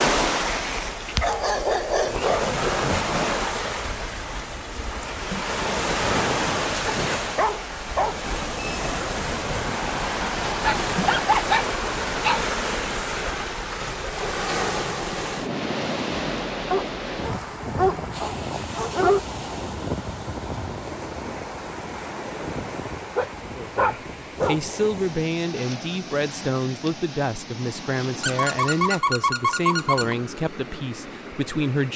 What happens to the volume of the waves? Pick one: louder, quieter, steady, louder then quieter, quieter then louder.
quieter.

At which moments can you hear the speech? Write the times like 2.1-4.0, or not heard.
23.6-31.9.